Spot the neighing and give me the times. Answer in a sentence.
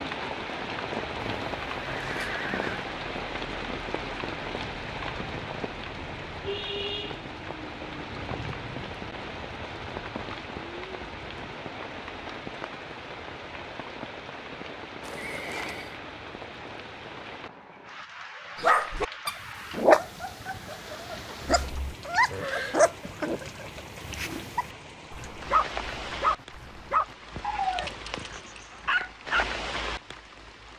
You can hear the neighing from 1.1 to 2.9 s, from 15.0 to 16.0 s and from 21.4 to 22.9 s.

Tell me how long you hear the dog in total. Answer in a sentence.
You can hear the dog for 11 seconds altogether.